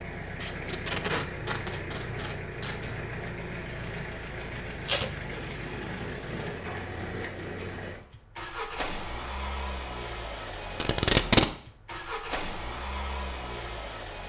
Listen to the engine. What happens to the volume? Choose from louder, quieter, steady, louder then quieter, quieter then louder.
steady.